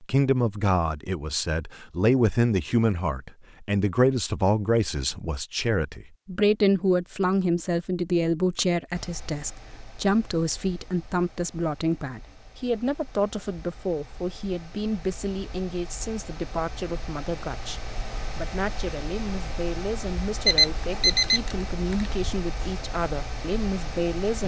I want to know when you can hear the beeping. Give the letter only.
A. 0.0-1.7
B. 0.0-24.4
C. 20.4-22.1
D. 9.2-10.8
C.